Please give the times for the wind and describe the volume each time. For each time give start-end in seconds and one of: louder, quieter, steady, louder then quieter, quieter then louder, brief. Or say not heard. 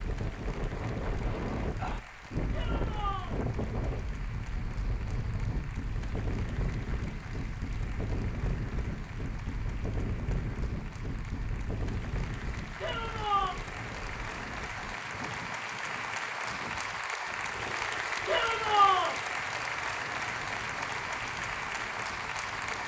0.0-22.8 quieter.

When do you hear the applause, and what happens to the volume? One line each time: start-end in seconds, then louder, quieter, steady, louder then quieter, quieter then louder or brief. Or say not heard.
0.0-22.8 louder.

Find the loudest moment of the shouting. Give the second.
19 s.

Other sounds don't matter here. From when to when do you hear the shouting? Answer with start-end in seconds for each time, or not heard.
2.5-3.4, 12.8-13.6, 18.2-19.1.